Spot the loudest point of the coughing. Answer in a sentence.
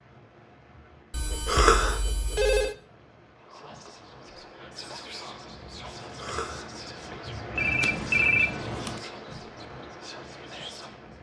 The loudest moment of the coughing is at 2 seconds.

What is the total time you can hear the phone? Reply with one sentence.
You can hear the phone for 3 seconds altogether.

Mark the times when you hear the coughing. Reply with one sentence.
The coughing can be heard from 1.4 to 2.0 s and from 6.2 to 6.7 s.